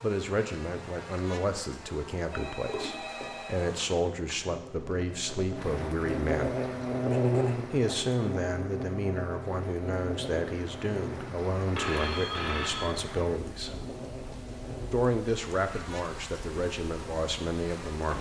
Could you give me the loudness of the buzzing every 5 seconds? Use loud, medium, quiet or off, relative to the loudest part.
quiet, loud, medium, quiet.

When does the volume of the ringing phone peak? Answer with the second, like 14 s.
12 s.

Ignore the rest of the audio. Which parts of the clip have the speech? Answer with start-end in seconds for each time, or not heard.
0.0-6.6, 7.7-13.8, 14.9-18.1.